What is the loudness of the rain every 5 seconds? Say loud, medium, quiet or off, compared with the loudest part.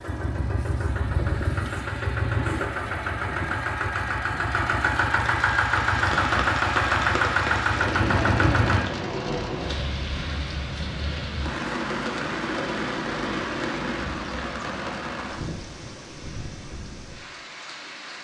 off, loud, loud, medium.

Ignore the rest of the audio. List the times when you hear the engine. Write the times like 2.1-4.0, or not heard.
0.0-8.8.